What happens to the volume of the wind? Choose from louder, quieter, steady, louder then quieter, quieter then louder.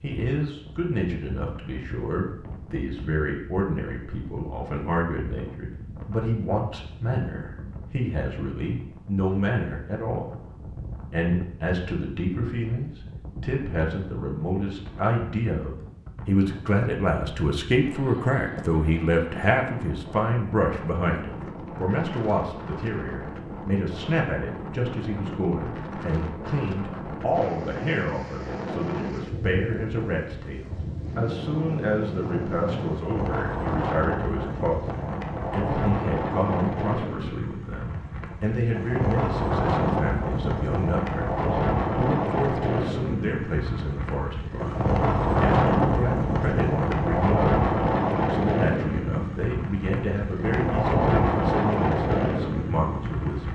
louder.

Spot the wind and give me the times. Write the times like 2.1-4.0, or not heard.
0.0-53.4.